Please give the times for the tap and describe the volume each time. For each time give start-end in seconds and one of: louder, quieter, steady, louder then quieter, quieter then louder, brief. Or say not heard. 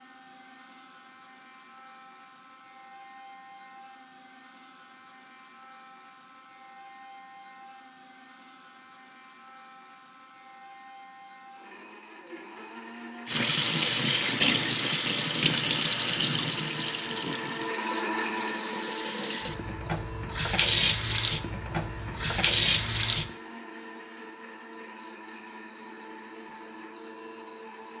13.2-23.3 quieter then louder.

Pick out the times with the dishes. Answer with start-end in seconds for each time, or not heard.
not heard.